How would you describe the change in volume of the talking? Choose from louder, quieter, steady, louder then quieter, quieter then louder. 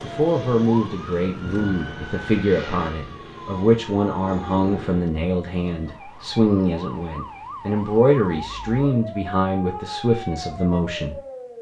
steady.